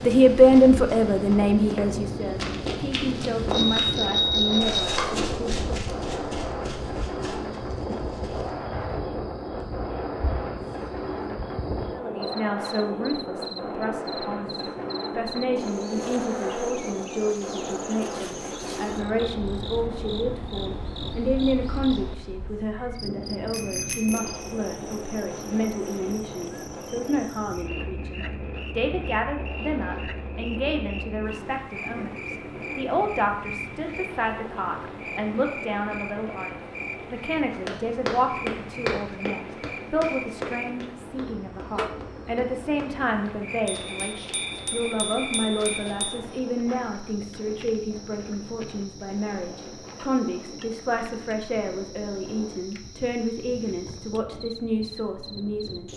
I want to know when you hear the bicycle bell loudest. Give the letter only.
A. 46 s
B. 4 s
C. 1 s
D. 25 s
B.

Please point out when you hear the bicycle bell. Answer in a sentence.
You can hear the bicycle bell from 3.5 to 5.0 s, from 23.5 to 24.4 s and from 43.6 to 46.2 s.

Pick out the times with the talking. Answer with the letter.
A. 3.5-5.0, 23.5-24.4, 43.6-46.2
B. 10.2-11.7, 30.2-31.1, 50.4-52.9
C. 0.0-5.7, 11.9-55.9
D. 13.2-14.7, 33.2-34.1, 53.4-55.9
C.